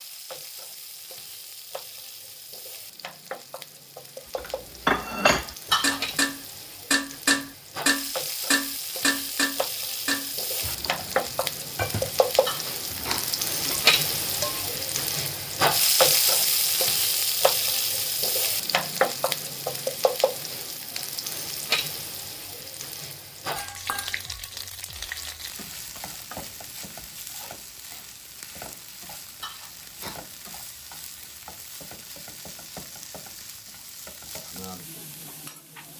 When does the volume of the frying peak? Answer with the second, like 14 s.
16 s.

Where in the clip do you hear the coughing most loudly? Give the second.
6 s.